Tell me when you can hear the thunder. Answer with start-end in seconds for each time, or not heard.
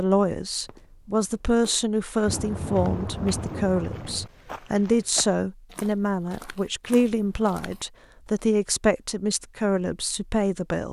2.2-4.3.